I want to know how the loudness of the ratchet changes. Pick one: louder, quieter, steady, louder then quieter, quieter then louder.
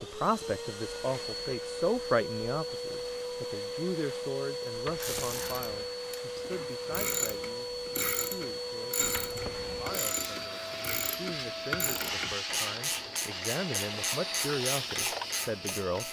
steady.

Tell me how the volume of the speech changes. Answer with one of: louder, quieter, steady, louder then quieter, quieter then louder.
quieter then louder.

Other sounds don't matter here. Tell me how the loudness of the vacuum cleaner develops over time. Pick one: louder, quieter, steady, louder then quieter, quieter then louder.
steady.